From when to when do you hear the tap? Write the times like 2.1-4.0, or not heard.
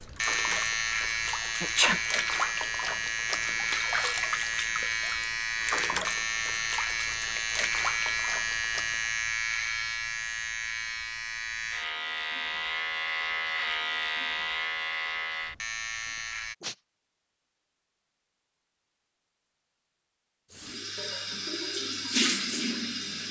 0.0-9.2, 20.5-23.2.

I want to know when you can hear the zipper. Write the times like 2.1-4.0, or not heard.
not heard.